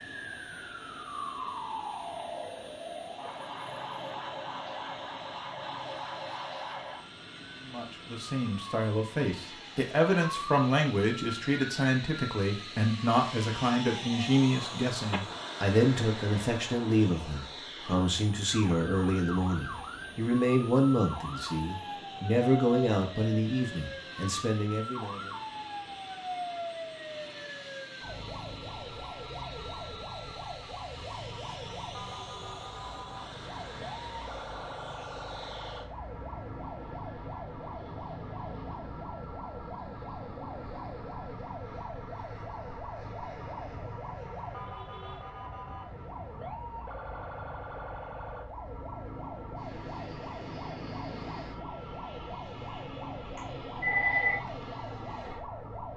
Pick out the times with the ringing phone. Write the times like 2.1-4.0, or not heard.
53.4-54.4.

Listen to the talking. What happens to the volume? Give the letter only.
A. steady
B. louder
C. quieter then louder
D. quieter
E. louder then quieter
A.